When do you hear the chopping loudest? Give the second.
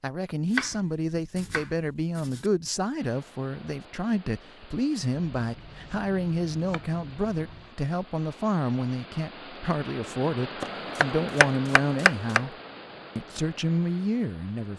12 s.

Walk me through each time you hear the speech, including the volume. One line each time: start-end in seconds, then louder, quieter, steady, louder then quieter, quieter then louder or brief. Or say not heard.
0.0-12.6 steady
13.2-14.7 brief.